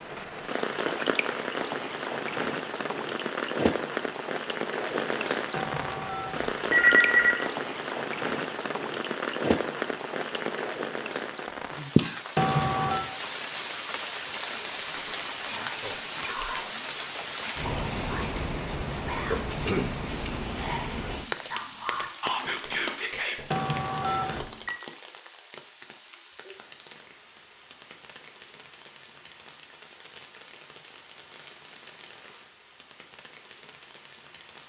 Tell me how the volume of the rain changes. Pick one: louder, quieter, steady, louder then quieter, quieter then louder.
quieter.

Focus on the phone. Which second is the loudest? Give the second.
7 s.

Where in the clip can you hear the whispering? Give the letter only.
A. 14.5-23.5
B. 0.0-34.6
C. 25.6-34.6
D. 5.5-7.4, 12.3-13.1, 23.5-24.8
A.